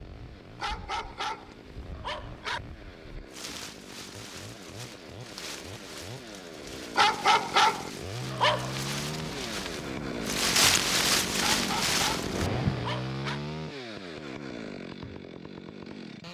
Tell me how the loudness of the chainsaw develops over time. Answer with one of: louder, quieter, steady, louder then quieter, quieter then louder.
louder.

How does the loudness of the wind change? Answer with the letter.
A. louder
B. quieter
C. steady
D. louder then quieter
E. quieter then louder
A.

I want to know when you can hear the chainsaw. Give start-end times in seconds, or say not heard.
0.0-16.2.